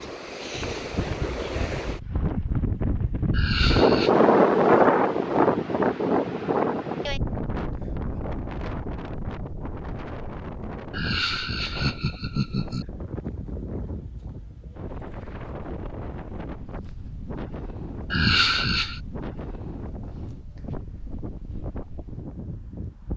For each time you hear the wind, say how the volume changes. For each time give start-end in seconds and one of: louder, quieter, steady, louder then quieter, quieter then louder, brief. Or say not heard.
0.0-23.1 quieter.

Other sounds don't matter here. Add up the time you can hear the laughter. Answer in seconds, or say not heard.
4 s.